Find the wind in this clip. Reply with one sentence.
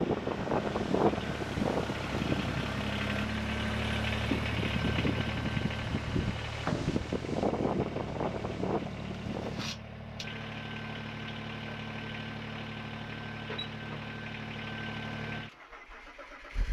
You can hear the wind from 0.0 to 9.7 s.